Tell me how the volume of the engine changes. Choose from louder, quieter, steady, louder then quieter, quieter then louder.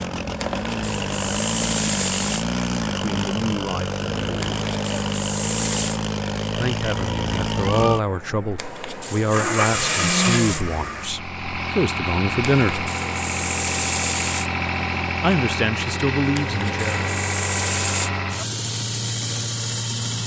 steady.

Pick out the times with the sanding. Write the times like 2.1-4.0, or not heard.
0.4-2.5, 4.4-6.0, 8.6-10.7, 12.5-14.5, 16.4-18.1.